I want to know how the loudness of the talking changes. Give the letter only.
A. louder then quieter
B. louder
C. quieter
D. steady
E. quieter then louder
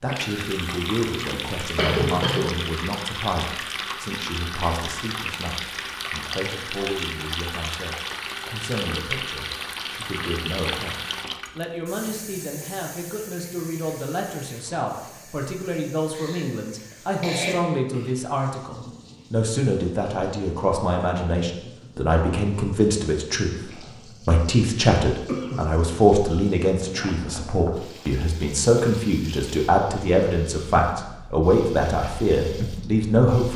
B.